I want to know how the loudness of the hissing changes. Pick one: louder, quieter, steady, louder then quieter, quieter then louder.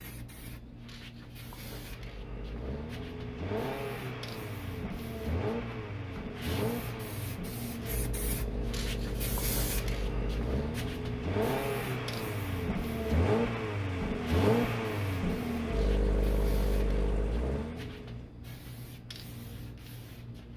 louder then quieter.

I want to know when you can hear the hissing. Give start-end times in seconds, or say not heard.
0.0-20.5.